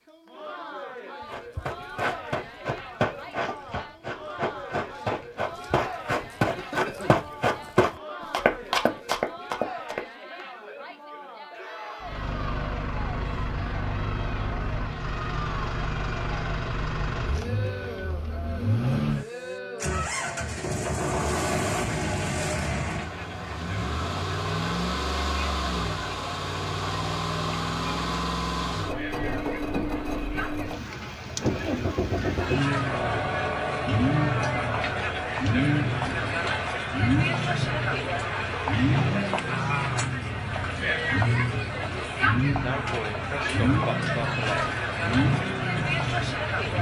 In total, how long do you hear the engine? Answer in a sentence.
You can hear the engine for 35 seconds altogether.